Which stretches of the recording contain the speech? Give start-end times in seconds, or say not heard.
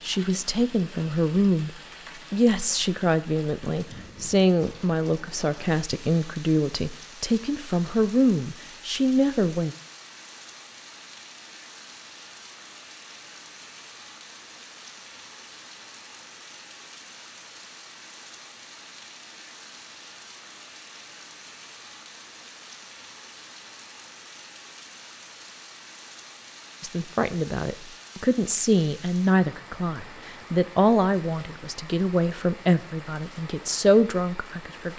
0.0-9.8, 26.8-34.9.